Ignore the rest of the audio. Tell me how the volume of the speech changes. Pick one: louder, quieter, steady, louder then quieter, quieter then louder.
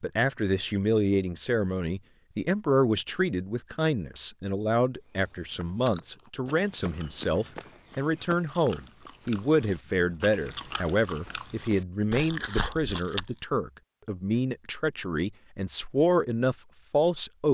steady.